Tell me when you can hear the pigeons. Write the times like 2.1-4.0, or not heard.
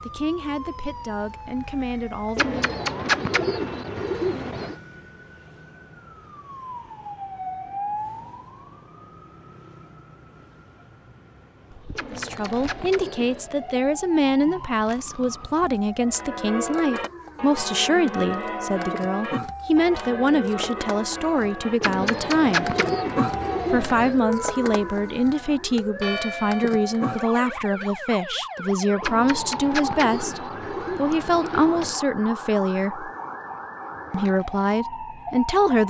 2.4-4.8, 11.9-13.5, 21.8-24.2, 29.0-31.9.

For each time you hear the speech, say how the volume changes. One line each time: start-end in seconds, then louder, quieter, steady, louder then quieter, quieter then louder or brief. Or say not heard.
0.0-2.6 brief
12.1-22.8 steady
23.7-33.1 steady
34.1-35.8 brief.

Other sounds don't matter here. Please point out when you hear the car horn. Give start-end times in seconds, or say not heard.
not heard.